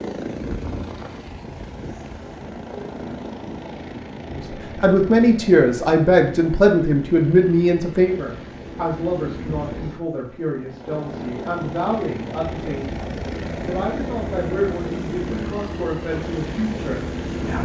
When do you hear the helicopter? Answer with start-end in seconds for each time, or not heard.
0.0-17.5.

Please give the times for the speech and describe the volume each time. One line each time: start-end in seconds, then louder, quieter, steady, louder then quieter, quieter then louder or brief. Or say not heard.
4.3-17.5 quieter.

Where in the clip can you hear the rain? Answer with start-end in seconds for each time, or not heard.
not heard.